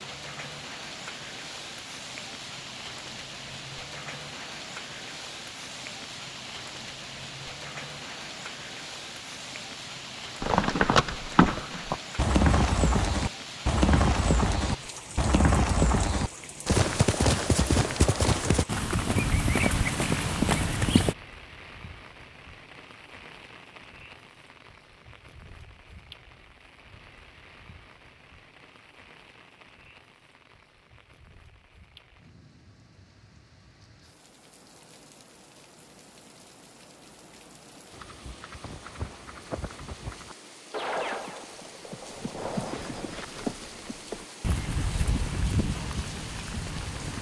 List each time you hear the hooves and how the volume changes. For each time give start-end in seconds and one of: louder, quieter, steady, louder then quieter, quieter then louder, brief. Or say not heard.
10.4-21.1 steady
37.9-47.1 louder.